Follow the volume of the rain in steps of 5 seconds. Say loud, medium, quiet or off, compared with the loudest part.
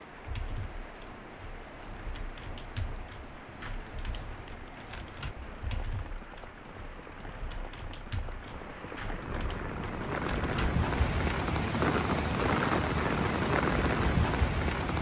quiet, quiet, loud.